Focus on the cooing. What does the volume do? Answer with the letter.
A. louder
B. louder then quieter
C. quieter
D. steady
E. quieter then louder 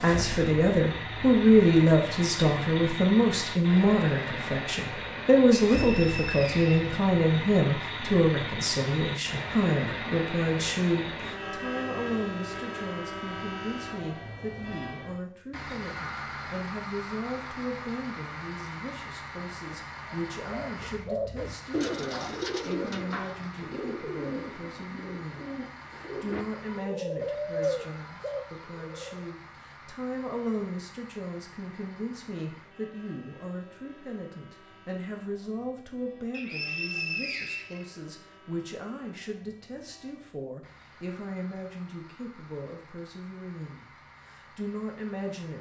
E.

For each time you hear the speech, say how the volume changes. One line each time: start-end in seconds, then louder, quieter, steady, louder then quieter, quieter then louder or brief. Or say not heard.
0.0-45.5 quieter.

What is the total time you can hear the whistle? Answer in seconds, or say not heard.
3 s.